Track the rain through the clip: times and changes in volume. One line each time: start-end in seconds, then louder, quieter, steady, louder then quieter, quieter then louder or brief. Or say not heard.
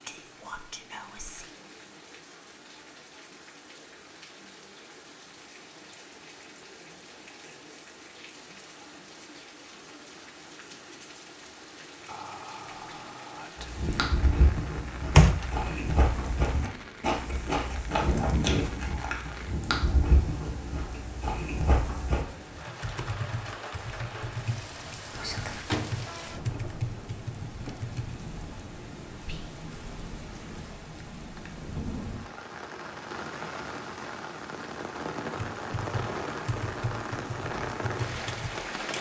0.0-38.9 louder.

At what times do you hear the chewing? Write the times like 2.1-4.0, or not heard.
13.6-22.2.